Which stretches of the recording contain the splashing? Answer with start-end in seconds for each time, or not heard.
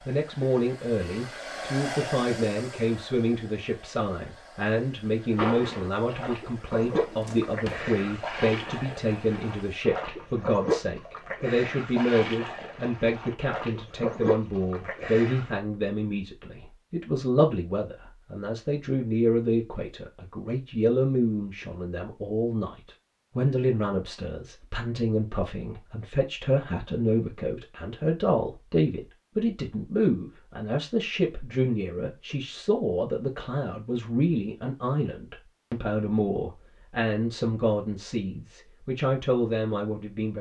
5.3-15.6.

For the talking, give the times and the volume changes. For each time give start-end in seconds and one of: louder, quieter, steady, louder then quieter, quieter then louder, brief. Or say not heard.
0.1-40.3 steady.